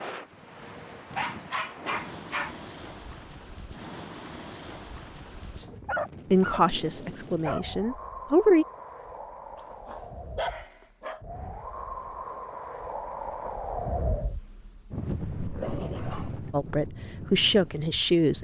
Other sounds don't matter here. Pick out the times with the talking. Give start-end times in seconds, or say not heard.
6.3-8.7, 16.5-18.3.